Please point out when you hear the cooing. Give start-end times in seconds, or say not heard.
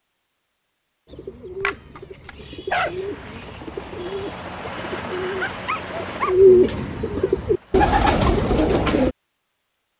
1.1-9.2.